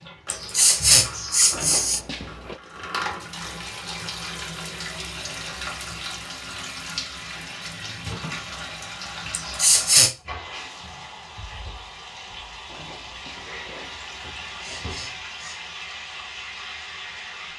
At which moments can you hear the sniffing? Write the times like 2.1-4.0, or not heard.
0.3-2.0, 9.3-10.2, 14.6-15.6.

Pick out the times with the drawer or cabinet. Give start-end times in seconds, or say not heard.
1.5-2.6, 12.7-14.9.